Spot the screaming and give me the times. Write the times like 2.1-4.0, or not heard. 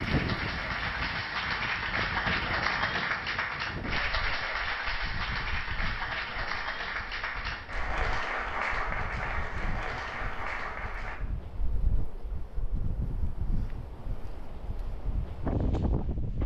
not heard.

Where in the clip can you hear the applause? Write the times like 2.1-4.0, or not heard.
0.0-11.2.